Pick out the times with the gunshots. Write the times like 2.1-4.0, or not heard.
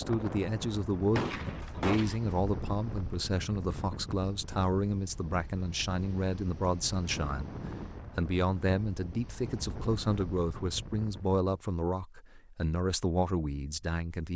1.1-2.2.